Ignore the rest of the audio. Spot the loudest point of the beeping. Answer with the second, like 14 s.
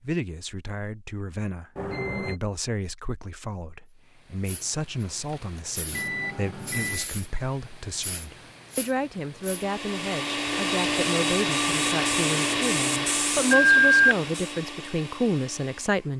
14 s.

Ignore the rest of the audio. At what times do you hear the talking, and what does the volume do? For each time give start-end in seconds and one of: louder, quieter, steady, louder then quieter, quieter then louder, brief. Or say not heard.
0.0-16.1 louder.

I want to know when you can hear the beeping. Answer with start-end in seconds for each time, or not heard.
1.8-2.4, 5.9-7.1, 13.5-14.2.